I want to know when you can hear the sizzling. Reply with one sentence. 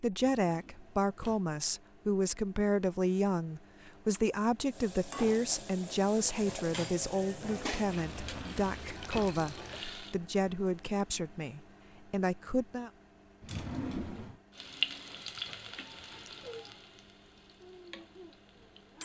You can hear the sizzling from 4.7 to 10.2 s and from 14.6 to 19.0 s.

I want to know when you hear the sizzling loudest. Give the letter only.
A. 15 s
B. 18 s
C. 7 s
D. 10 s
A.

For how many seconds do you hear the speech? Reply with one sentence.
The speech can be heard for 13 seconds in total.